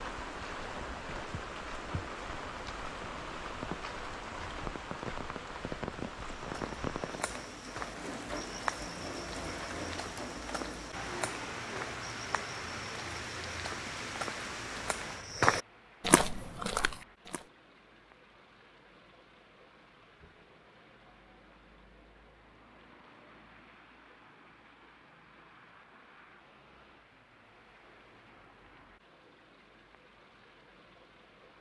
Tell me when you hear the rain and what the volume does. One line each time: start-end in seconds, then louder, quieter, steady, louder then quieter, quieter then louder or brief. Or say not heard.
0.0-31.5 quieter.